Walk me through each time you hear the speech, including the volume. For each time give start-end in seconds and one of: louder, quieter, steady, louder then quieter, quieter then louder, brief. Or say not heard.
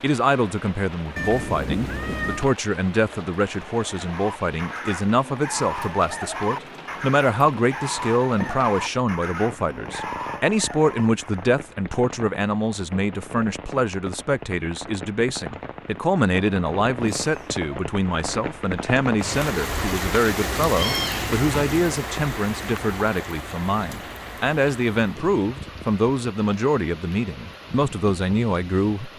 0.0-29.1 steady.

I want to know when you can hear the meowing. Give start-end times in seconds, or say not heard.
1.1-2.5, 17.1-17.6, 20.4-21.9.